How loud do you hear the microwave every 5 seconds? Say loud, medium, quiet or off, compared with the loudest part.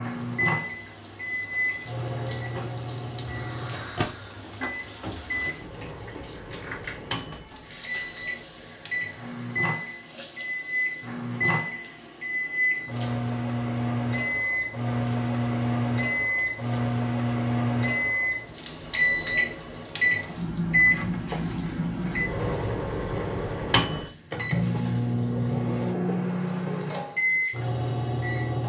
medium, medium, loud, loud, loud, loud.